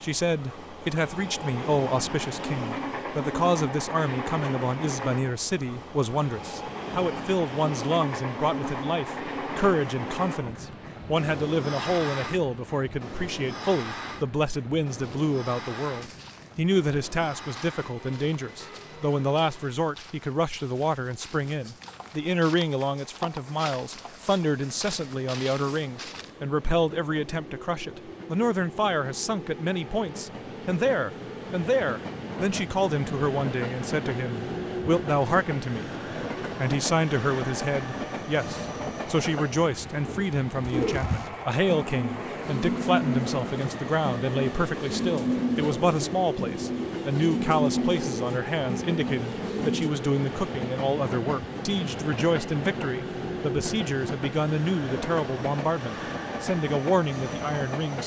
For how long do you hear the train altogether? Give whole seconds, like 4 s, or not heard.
58 s.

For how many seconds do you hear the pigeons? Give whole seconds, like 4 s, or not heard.
9 s.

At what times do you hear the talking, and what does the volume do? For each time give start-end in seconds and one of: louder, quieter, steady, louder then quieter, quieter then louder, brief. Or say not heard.
0.0-35.9 steady
36.5-58.0 steady.